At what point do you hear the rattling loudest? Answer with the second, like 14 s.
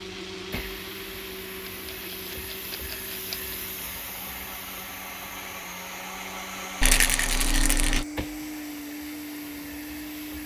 7 s.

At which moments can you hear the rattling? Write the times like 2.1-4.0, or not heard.
1.6-3.5, 6.8-8.1.